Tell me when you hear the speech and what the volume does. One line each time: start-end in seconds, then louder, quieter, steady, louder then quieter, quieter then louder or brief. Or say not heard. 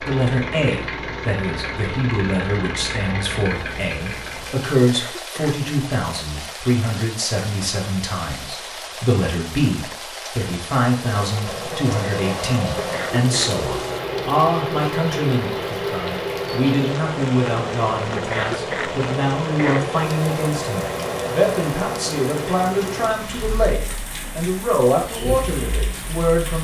0.0-26.5 steady.